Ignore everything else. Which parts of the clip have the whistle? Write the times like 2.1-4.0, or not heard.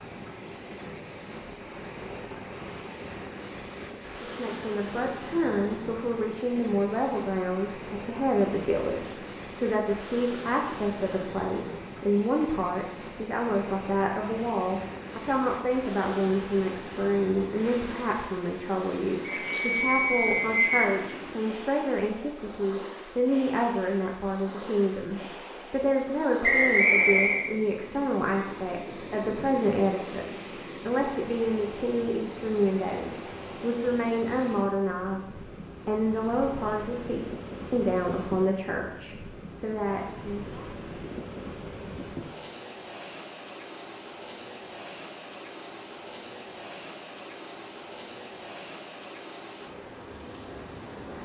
19.2-20.9, 26.4-27.4.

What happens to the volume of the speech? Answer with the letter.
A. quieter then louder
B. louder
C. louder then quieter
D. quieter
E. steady
E.